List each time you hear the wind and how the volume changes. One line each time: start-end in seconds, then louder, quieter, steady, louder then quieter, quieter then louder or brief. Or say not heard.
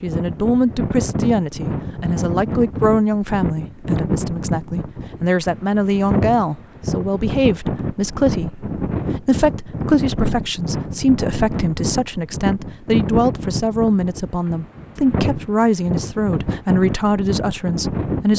0.0-18.3 steady.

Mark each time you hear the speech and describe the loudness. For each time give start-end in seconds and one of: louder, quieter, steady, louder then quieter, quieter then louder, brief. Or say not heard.
0.0-18.3 steady.